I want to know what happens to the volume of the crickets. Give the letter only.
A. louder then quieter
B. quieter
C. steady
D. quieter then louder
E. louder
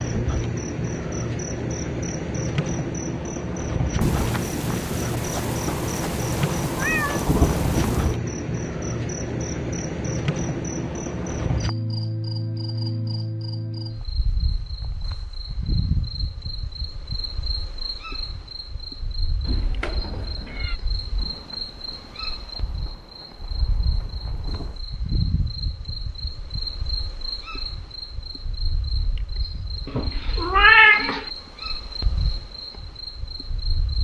B.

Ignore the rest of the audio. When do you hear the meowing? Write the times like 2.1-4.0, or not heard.
6.8-7.2, 19.4-20.8, 29.9-31.2.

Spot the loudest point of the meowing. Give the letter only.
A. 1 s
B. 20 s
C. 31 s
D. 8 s
C.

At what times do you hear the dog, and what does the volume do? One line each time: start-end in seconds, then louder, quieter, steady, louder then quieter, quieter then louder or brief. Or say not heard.
not heard.